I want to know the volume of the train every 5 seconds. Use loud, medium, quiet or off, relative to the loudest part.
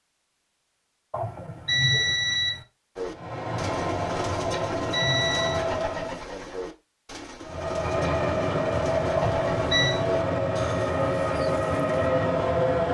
medium, loud, loud.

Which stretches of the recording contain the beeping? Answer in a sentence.
You can hear the beeping from 1.1 to 2.6 s, from 4.3 to 5.7 s and from 9.2 to 10.0 s.